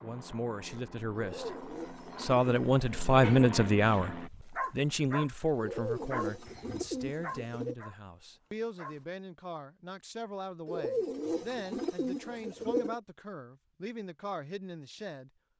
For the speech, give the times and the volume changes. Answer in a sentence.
You can hear the speech from 0.0 to 15.3 s, getting quieter.